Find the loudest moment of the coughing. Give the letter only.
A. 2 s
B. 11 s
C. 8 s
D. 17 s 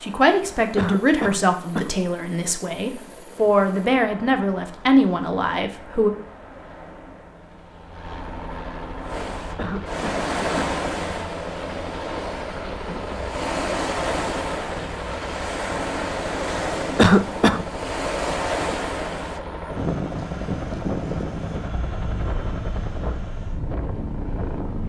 D.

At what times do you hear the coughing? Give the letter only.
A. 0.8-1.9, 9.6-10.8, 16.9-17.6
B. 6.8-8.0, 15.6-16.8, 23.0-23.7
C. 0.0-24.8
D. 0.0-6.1
A.